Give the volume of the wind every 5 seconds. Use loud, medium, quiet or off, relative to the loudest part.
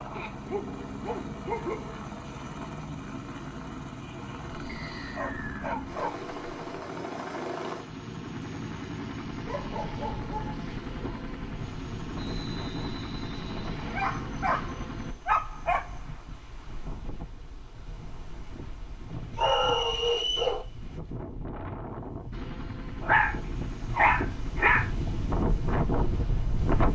off, off, quiet, quiet, medium, loud.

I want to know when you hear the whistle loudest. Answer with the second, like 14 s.
20 s.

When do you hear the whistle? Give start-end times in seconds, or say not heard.
4.7-5.7, 12.2-14.2, 19.4-20.6.